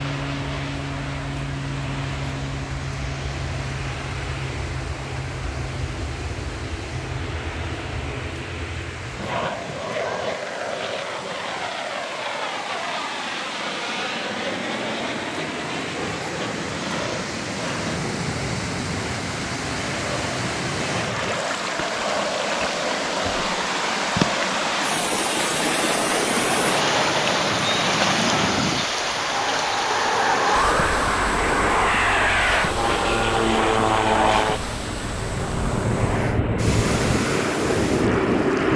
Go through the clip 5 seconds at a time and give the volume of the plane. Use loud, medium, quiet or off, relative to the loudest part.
medium, medium, medium, medium, medium, medium, loud, loud.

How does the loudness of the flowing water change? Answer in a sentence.
The loudness of the flowing water goes up, then down.